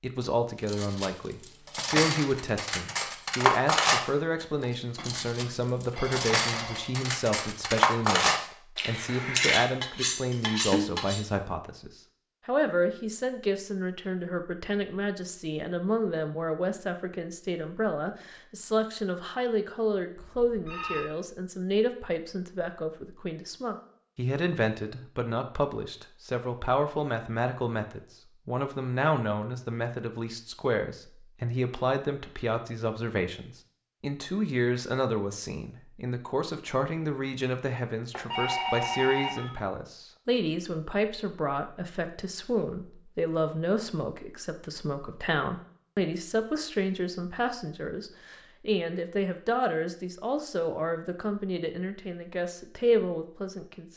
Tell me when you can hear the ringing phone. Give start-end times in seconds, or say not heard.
5.0-7.0, 20.1-21.1, 38.1-39.5.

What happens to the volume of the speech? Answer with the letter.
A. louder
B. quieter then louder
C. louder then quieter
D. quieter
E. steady
E.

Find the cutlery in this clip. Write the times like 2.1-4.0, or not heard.
0.7-11.2.